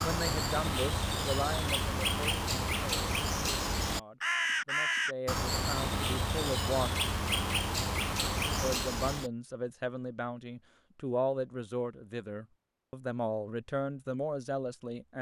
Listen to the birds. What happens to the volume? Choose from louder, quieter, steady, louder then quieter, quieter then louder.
steady.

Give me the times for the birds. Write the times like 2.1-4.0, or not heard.
0.0-9.3.